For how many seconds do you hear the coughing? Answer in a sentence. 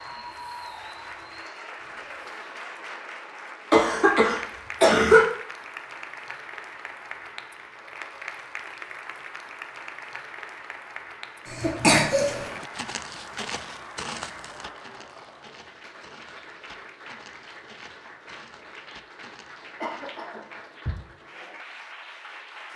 The coughing can be heard for 4 seconds in total.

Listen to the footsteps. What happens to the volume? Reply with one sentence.
The volume of the footsteps goes down.